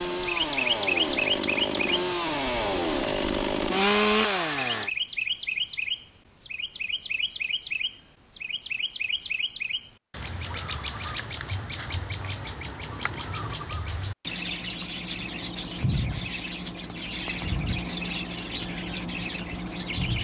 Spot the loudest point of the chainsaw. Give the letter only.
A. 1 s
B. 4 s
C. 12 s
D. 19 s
B.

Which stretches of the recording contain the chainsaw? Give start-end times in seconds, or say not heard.
0.0-4.9.